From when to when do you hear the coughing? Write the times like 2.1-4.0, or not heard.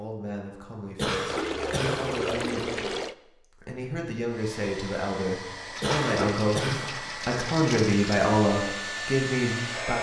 0.9-2.1, 5.8-6.9.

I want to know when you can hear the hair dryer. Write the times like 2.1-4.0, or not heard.
4.2-9.9.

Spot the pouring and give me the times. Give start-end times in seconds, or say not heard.
1.2-3.1, 5.8-8.3.